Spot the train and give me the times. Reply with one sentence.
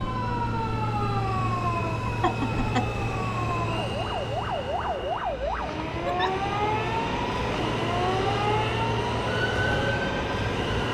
The train can be heard from 0.0 to 10.9 s.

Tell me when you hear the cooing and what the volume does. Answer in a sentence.
The cooing can't be heard in this clip.